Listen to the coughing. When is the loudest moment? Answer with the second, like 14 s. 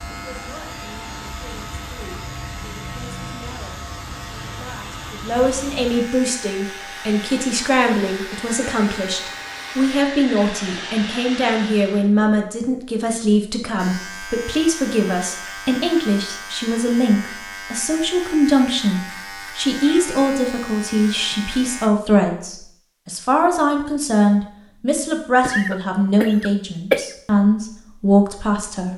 27 s.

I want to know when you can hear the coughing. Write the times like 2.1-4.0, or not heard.
25.4-27.1.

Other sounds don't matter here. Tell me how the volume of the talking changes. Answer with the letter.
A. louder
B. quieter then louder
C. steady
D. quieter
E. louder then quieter
A.